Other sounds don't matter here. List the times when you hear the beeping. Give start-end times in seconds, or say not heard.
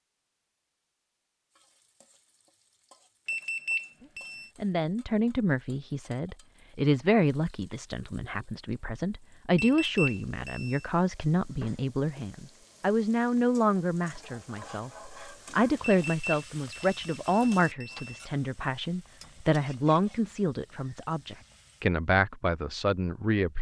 3.2-4.5, 9.6-10.8, 16.1-18.2.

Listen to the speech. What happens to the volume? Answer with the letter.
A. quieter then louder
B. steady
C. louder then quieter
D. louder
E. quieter
B.